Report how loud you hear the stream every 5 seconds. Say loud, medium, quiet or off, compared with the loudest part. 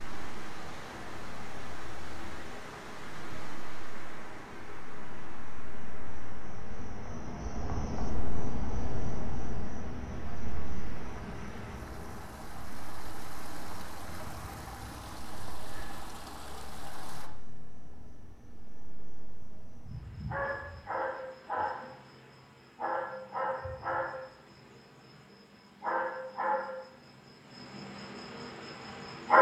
loud, medium, loud, loud, off, off.